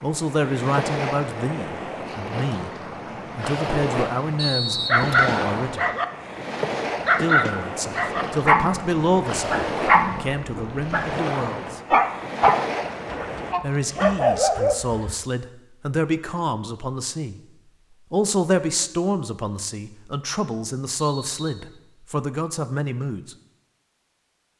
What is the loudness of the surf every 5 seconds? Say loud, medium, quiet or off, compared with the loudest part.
loud, loud, loud, off, off.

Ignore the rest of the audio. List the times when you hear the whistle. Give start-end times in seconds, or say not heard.
4.3-5.5, 20.9-21.6.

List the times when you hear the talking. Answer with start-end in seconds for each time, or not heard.
0.0-2.7, 3.4-5.8, 7.2-11.8, 13.6-17.4, 18.1-23.4.